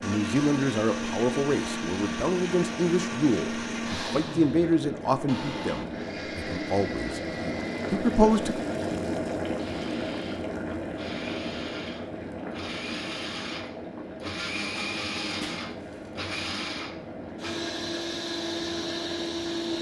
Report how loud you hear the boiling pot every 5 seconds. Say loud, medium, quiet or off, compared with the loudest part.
medium, loud, loud, medium.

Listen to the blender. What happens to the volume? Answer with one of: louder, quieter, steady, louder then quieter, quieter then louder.
quieter then louder.